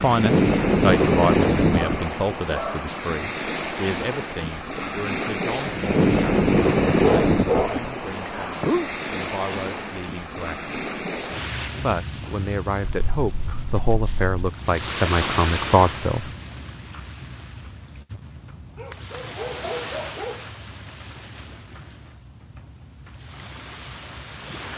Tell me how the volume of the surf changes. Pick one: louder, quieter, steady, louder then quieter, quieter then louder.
quieter.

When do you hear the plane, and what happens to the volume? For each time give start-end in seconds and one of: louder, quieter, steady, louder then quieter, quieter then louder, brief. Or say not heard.
not heard.